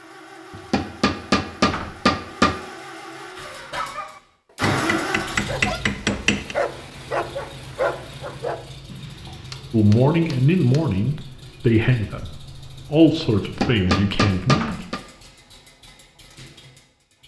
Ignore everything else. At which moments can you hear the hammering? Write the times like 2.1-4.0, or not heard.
0.5-2.5, 4.7-6.5, 8.9-10.8, 13.4-15.0.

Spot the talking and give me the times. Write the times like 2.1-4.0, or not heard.
9.7-14.8.